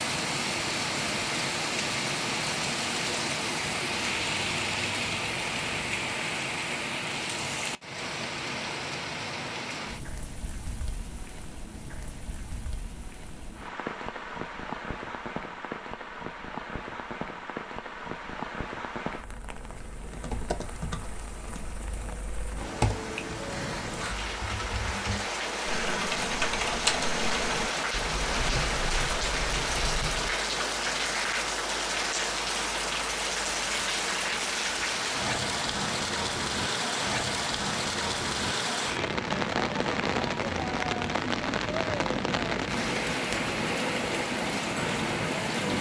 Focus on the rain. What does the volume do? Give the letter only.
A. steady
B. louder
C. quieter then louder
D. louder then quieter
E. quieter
C.